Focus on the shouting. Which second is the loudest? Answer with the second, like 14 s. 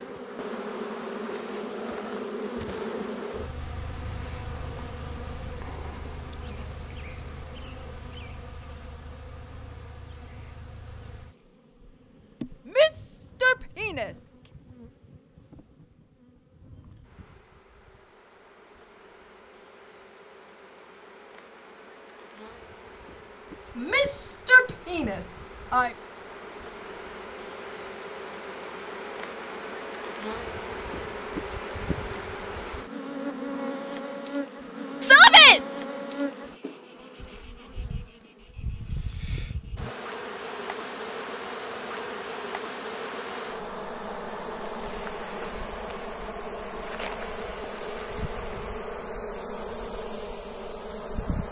35 s.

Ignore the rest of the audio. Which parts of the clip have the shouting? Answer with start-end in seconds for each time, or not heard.
12.8-14.1, 23.8-25.9, 35.0-35.6.